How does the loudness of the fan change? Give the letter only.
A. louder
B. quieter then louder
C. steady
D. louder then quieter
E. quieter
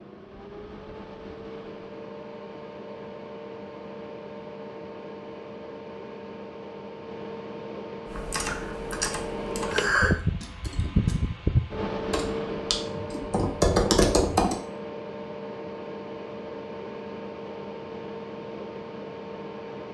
D.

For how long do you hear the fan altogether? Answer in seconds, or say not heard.
20 s.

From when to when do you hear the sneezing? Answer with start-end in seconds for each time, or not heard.
not heard.